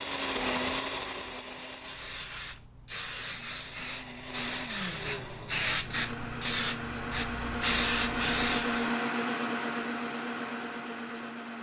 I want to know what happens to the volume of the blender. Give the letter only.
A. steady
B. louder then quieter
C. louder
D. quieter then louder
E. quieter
D.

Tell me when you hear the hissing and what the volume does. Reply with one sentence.
The hissing can be heard from 1.8 to 8.9 s, getting louder.